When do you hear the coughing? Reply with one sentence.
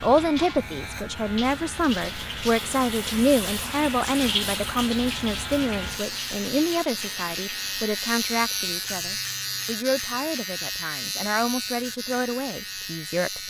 You can't hear the coughing here.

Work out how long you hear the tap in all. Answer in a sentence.
The tap can be heard for 9 seconds in total.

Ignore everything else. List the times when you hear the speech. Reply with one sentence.
You can hear the speech from 0.0 to 13.4 s.